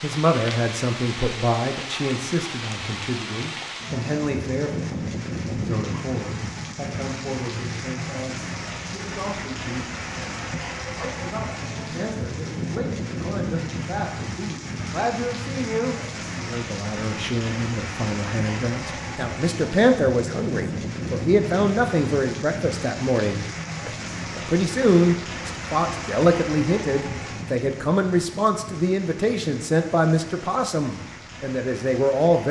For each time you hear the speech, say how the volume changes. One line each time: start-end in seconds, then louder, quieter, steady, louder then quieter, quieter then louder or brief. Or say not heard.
0.0-32.4 quieter then louder.